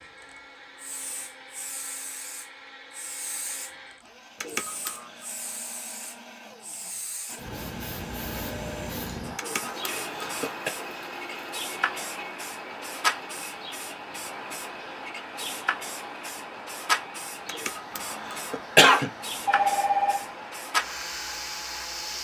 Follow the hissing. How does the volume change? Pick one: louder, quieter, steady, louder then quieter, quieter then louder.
louder.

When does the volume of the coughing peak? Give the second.
19 s.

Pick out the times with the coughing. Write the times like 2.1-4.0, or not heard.
4.4-5.1, 9.3-10.7, 17.4-19.1.